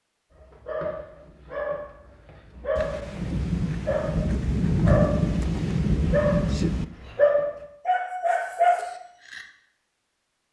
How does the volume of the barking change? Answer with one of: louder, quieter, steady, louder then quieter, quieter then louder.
louder.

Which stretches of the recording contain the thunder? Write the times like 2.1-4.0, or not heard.
2.8-6.8.